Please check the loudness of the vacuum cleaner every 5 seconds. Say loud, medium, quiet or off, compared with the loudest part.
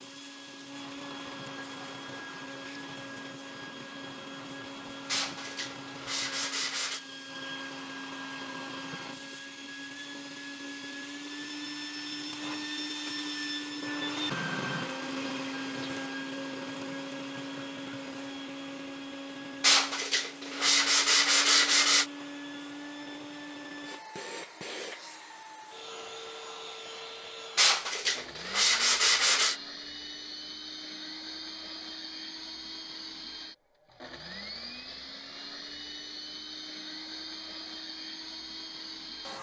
medium, medium, loud, loud, medium, medium, medium, medium.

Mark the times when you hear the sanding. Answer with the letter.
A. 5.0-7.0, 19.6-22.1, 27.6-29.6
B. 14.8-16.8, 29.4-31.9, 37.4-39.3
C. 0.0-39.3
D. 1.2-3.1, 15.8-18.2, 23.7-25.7
A.